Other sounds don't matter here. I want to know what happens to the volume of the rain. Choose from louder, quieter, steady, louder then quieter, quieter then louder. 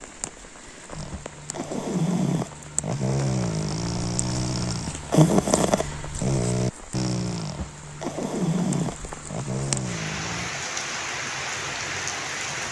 louder.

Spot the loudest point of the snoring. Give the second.
5 s.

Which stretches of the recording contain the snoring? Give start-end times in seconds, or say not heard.
0.9-10.6.